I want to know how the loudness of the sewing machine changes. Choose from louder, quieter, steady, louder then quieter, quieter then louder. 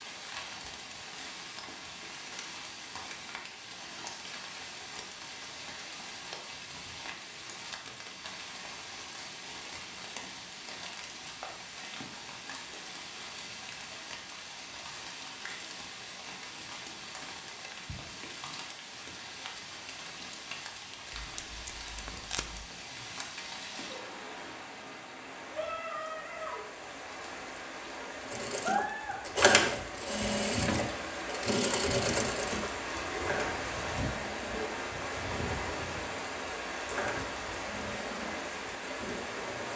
quieter.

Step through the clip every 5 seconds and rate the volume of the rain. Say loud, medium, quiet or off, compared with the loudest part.
medium, medium, medium, medium, medium, loud, loud, loud.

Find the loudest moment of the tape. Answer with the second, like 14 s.
22 s.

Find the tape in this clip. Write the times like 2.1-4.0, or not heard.
21.1-22.7.